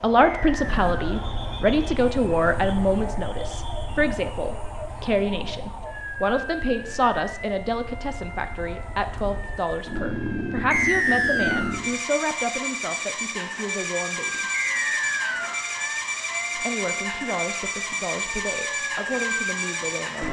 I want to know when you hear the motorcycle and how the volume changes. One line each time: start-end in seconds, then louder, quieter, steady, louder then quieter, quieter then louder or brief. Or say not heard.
0.0-20.2 quieter then louder.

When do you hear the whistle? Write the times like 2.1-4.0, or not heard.
0.2-1.1, 10.7-11.8, 14.5-15.7.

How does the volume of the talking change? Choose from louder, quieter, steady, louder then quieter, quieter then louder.
quieter.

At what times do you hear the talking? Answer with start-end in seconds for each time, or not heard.
0.0-14.4, 16.5-20.2.